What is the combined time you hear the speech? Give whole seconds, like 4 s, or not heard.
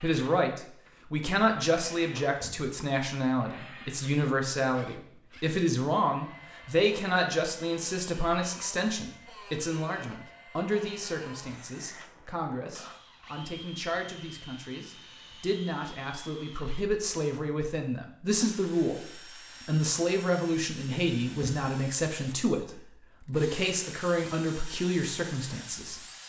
26 s.